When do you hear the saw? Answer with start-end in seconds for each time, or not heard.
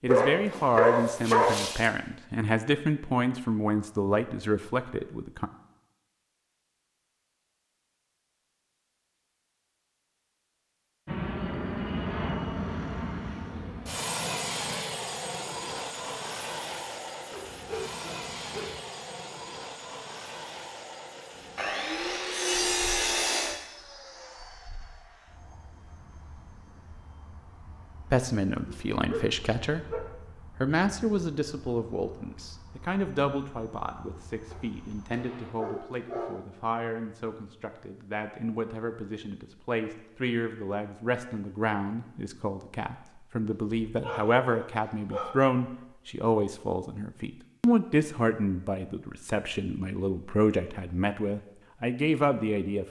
21.6-23.6.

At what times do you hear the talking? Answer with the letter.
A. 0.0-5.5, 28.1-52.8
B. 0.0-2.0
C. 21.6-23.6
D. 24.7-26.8
A.